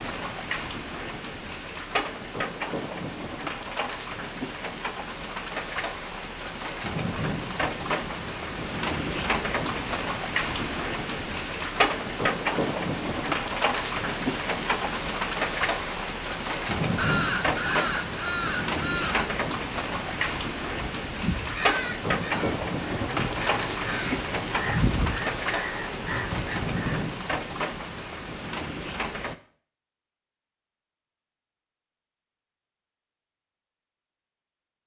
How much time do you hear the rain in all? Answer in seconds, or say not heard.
29 s.